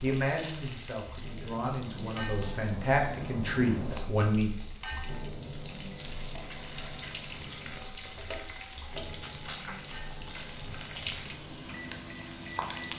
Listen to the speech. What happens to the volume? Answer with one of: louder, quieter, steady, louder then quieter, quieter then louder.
louder.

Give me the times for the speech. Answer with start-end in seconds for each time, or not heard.
0.0-4.7.